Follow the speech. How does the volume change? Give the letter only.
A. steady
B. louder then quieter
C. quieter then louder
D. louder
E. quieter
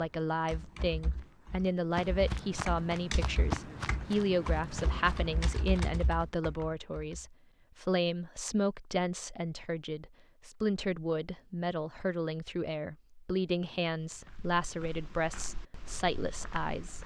A.